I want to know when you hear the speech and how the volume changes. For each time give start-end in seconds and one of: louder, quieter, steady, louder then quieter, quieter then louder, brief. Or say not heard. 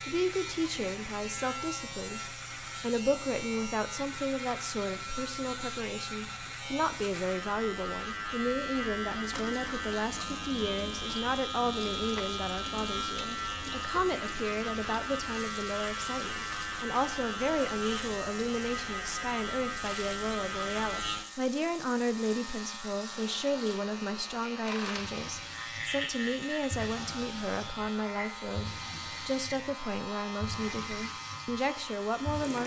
0.0-32.6 steady.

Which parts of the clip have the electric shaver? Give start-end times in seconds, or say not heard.
0.0-32.6.